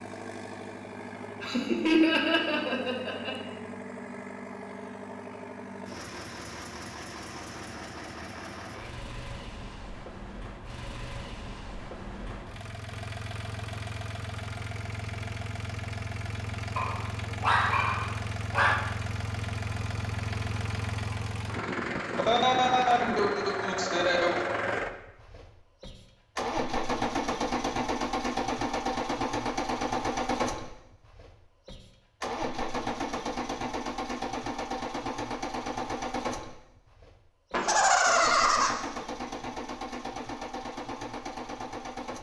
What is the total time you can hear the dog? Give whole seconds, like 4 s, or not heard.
2 s.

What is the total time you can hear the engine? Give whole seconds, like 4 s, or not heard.
42 s.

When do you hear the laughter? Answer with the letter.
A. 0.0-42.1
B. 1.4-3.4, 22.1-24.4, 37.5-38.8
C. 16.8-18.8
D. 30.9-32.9
B.